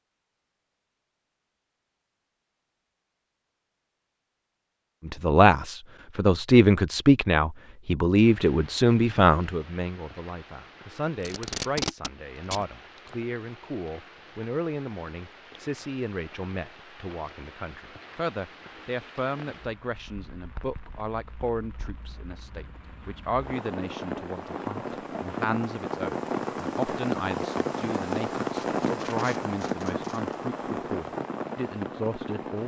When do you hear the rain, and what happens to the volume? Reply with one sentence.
You can hear the rain from 8.2 to 32.6 s, getting louder.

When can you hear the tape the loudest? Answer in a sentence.
The loudest moment of the tape is at 12 seconds.